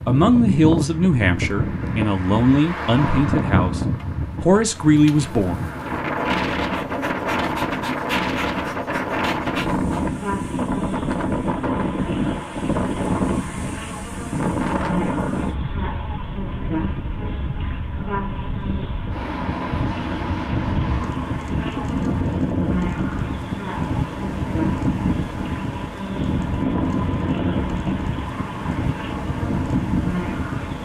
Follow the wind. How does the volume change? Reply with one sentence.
The volume of the wind stays about the same.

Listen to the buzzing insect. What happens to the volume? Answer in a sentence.
The loudness of the buzzing insect stays about the same.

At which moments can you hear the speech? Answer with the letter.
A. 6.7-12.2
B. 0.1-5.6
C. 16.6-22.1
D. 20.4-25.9
B.